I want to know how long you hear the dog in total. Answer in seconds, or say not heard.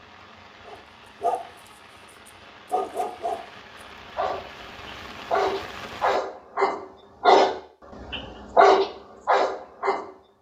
8 s.